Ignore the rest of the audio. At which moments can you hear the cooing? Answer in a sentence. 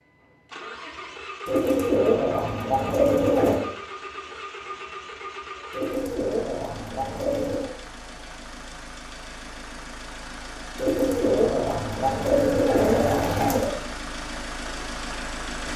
You can hear the cooing from 1.4 to 3.6 s, from 5.7 to 7.7 s and from 10.8 to 13.7 s.